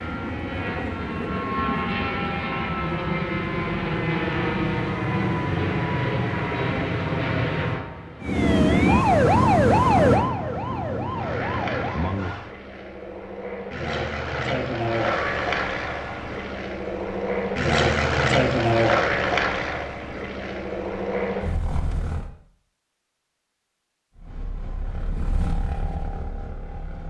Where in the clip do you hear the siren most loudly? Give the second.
10 s.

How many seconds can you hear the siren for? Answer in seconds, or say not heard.
6 s.